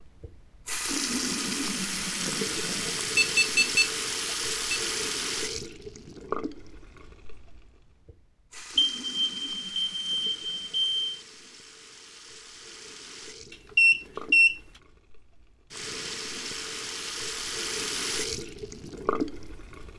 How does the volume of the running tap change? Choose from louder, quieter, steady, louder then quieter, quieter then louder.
quieter then louder.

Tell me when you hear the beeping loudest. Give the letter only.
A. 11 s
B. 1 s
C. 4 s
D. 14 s
D.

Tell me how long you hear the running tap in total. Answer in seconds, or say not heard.
20 s.